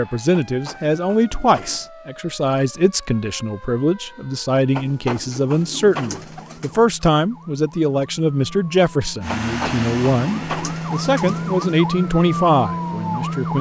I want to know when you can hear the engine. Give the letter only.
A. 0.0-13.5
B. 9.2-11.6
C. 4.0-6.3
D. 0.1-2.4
B.